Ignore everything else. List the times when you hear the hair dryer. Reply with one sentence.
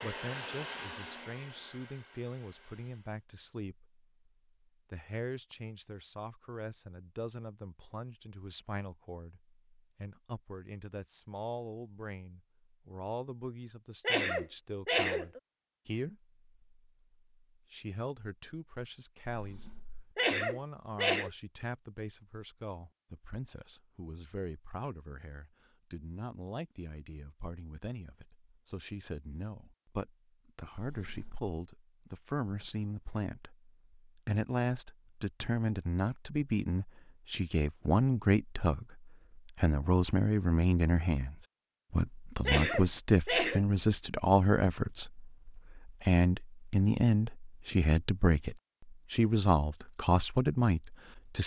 You can hear the hair dryer from 0.0 to 3.2 s.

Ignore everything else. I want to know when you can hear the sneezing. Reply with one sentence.
The sneezing can be heard from 14.0 to 15.4 s, from 20.1 to 21.3 s and from 42.5 to 43.6 s.